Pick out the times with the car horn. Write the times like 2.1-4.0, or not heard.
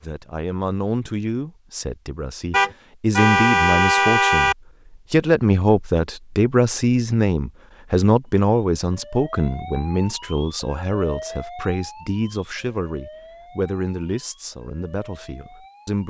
2.5-4.5.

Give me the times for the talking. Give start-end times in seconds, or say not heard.
0.0-16.0.